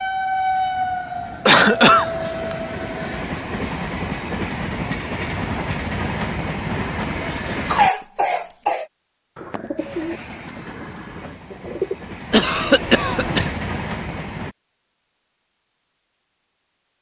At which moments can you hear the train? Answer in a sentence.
The train can be heard from 0.0 to 7.9 s and from 9.8 to 14.6 s.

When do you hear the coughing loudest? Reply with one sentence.
The loudest moment of the coughing is at 2 seconds.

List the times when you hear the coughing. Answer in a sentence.
You can hear the coughing from 1.4 to 2.1 s, from 7.2 to 8.8 s and from 12.3 to 13.5 s.